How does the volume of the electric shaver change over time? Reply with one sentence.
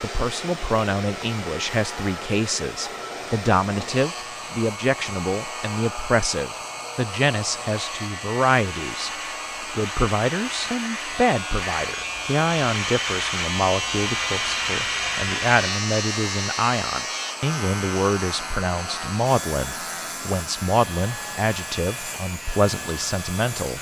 The loudness of the electric shaver goes up, then down.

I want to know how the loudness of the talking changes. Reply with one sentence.
The volume of the talking stays about the same.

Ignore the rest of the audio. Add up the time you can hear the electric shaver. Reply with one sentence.
You can hear the electric shaver for 24 seconds altogether.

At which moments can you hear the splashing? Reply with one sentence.
You can't hear the splashing here.